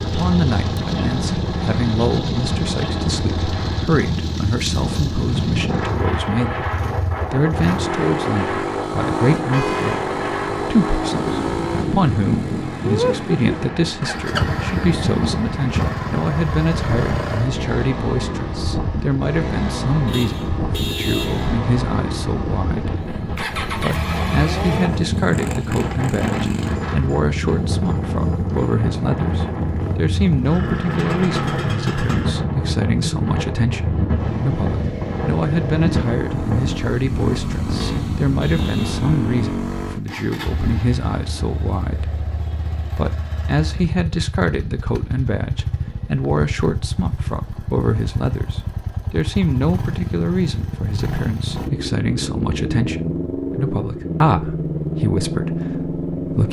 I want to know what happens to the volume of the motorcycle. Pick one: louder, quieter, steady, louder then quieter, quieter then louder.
steady.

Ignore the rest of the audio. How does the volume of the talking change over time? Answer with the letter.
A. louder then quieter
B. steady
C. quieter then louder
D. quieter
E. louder
B.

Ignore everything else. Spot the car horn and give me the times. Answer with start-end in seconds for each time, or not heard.
9.3-10.0, 20.1-21.6, 37.7-39.0.